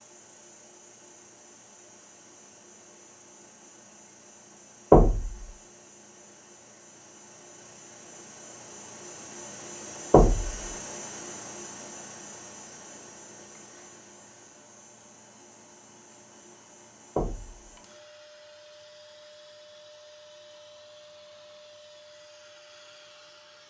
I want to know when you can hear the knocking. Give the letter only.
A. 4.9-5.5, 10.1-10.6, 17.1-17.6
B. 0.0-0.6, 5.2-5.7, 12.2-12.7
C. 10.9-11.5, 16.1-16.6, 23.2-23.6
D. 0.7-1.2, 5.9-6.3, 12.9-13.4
A.